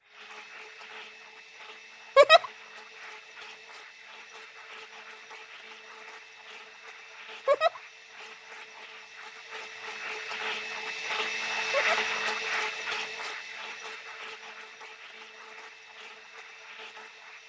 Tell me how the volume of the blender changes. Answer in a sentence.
The loudness of the blender goes up, then down.